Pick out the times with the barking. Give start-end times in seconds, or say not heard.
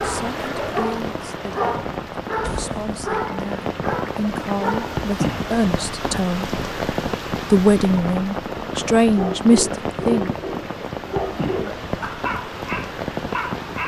0.0-5.0, 9.1-13.8.